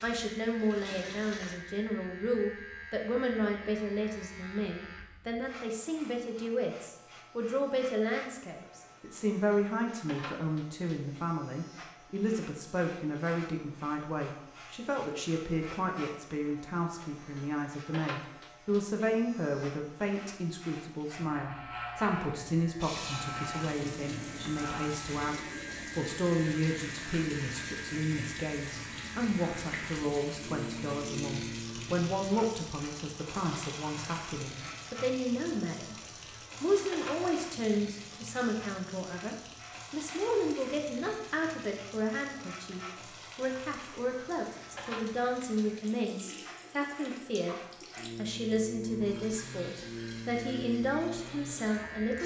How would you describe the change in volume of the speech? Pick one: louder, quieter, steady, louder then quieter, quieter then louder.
steady.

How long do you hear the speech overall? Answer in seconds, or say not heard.
51 s.